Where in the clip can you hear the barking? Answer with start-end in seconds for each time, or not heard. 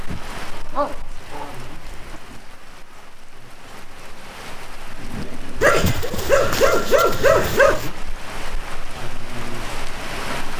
0.5-2.2, 5.6-7.9.